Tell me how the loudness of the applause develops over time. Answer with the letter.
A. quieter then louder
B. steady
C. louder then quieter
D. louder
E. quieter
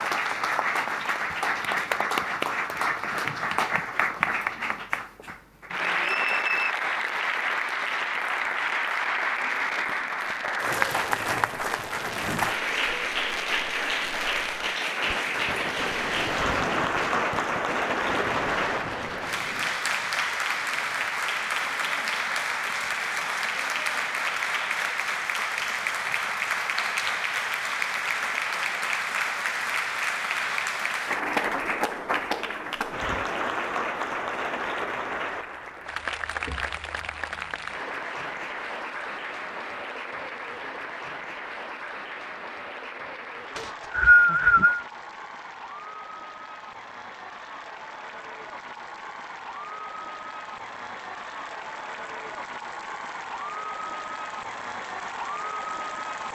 E.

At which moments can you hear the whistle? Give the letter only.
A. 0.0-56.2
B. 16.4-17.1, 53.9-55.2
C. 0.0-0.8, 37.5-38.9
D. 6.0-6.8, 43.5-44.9
D.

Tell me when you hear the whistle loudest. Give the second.
44 s.